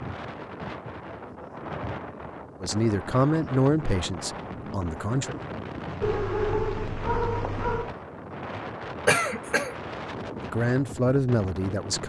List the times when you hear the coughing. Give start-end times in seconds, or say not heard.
9.1-9.8.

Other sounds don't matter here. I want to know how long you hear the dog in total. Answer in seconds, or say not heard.
2 s.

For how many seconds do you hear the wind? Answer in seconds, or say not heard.
12 s.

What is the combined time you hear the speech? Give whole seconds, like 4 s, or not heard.
4 s.